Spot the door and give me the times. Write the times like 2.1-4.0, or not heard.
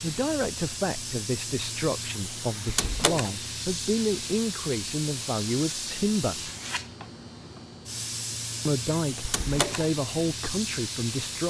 2.6-3.3, 9.2-9.8.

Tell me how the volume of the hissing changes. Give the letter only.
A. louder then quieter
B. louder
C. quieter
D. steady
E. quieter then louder
D.